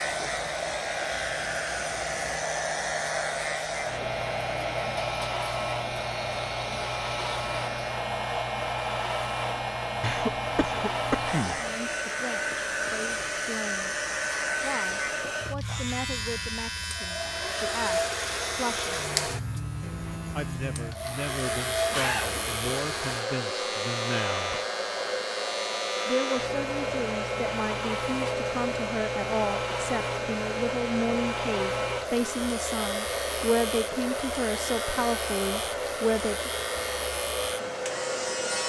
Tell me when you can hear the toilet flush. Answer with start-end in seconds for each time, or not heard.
not heard.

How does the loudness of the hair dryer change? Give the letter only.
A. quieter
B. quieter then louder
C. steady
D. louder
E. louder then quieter
C.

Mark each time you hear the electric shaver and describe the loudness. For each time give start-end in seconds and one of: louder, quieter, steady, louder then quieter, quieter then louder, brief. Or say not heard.
0.0-38.6 steady.